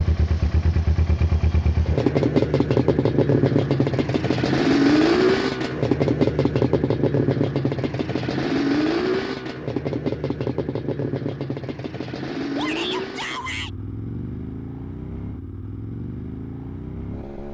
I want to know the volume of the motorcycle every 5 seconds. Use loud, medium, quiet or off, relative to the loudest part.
loud, loud, medium, quiet.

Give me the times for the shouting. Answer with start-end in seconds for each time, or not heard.
12.6-13.7.